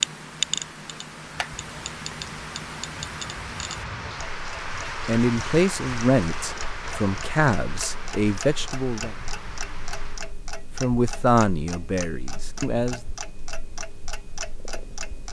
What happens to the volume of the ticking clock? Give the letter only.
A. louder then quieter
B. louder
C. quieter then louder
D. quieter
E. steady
D.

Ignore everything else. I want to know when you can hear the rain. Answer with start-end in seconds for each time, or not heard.
0.0-10.3.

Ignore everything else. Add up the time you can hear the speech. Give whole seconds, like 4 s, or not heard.
6 s.